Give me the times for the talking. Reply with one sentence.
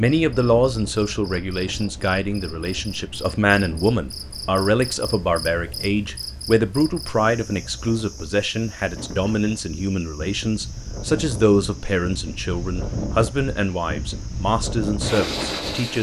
You can hear the talking from 0.0 to 15.9 s.